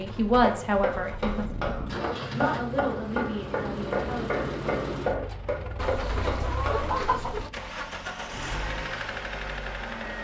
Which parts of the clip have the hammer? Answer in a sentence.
The hammer can be heard from 0.0 to 7.2 s.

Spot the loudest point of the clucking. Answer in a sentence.
The loudest moment of the clucking is at 7 seconds.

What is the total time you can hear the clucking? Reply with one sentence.
The clucking can be heard for 2 seconds in total.